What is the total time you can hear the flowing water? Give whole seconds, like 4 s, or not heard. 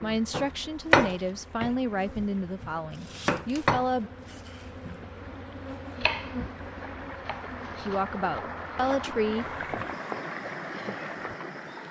12 s.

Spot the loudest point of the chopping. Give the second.
1 s.